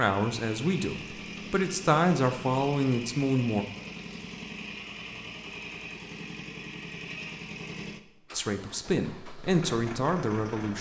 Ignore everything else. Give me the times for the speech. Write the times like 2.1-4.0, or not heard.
0.0-3.6, 8.3-10.7.